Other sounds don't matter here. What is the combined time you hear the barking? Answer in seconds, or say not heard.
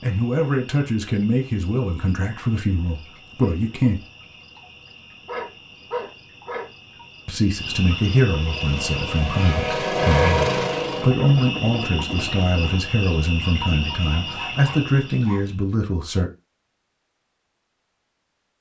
3 s.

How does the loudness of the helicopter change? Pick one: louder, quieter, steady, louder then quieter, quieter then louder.
louder then quieter.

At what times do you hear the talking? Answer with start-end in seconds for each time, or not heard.
0.0-4.0, 7.2-16.3.